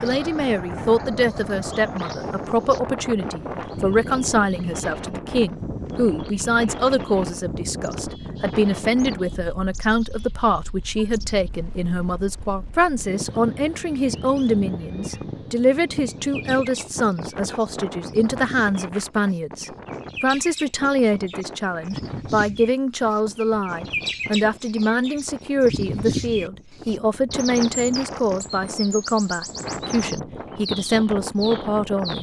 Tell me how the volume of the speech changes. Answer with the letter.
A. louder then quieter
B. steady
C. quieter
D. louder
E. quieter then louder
B.